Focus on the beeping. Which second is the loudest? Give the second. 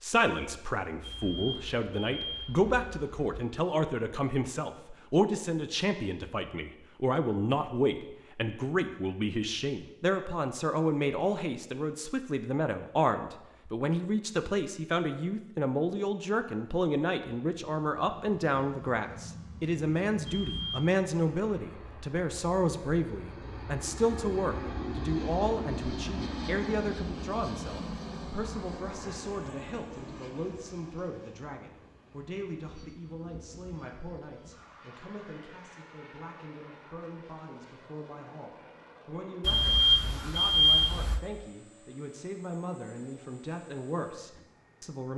41 s.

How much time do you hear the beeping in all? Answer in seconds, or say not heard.
5 s.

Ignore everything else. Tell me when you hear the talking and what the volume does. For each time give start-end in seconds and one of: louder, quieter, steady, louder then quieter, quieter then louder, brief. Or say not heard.
0.0-45.1 quieter.